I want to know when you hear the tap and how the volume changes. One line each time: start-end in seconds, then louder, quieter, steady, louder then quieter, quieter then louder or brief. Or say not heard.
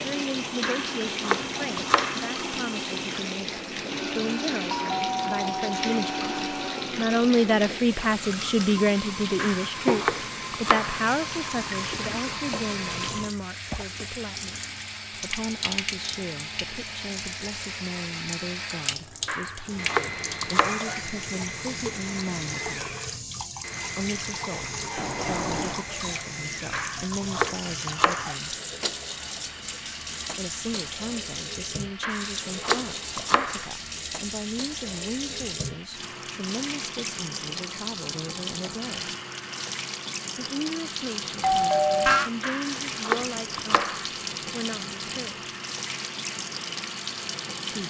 0.0-47.8 steady.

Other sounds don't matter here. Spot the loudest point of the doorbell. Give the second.
42 s.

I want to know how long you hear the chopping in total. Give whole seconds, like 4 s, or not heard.
10 s.